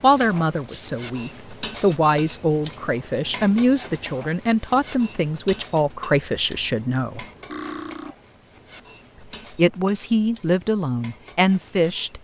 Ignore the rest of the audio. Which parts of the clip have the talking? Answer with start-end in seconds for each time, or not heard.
0.0-7.2, 9.6-12.1.